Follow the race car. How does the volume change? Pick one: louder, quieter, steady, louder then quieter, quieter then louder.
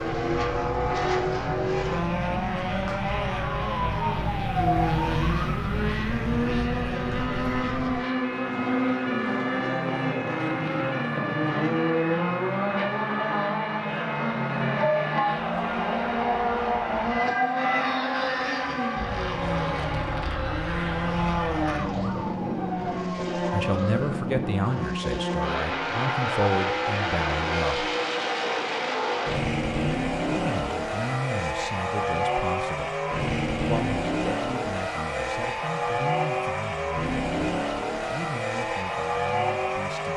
steady.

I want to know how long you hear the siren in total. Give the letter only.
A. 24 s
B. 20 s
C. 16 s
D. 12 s
A.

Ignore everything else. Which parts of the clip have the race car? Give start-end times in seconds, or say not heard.
0.0-40.1.